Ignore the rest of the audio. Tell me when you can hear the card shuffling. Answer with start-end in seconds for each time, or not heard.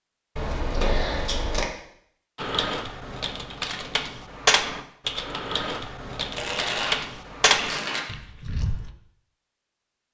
0.3-1.6, 6.3-8.0.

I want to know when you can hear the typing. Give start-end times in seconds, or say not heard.
2.4-8.9.